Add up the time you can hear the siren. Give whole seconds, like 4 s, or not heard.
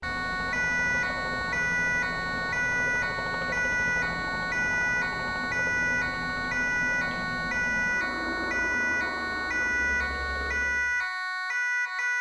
12 s.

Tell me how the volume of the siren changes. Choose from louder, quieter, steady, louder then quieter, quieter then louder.
steady.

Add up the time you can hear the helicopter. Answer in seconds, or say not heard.
11 s.